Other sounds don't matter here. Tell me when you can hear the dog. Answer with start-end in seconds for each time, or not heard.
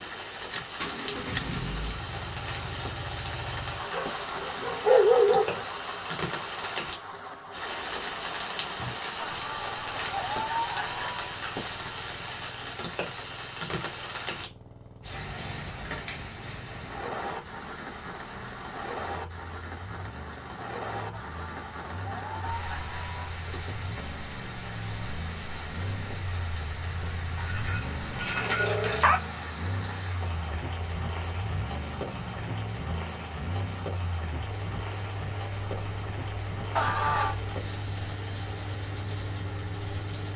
3.9-5.7, 27.4-29.2.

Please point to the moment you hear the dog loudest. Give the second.
5 s.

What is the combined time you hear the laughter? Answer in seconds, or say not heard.
5 s.